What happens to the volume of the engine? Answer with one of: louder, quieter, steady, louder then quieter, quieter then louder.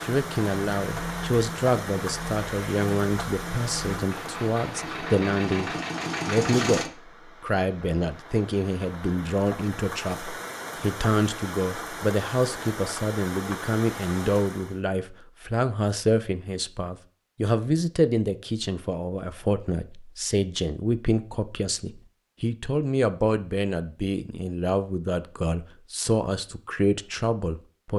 louder.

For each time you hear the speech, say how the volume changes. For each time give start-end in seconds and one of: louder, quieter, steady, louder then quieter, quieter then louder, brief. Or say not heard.
0.0-27.9 steady.